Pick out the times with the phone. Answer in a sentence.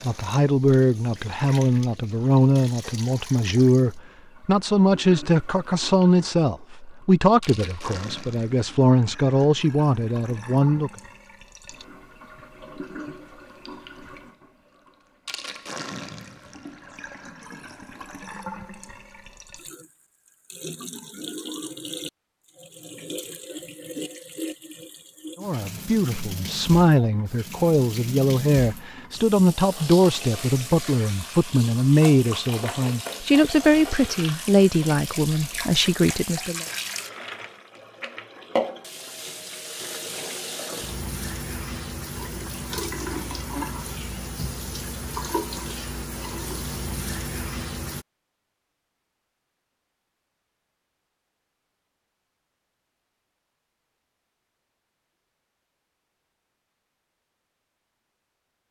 You can't hear the phone here.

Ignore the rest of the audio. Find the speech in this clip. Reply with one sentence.
The speech can be heard from 0.0 to 10.9 s and from 25.4 to 36.6 s.